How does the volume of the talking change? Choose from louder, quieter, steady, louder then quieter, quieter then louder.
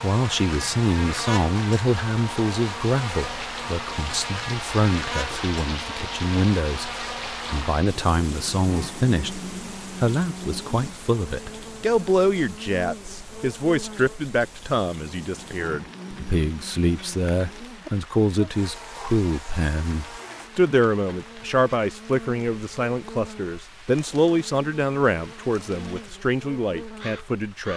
steady.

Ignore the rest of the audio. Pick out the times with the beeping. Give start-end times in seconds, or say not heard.
not heard.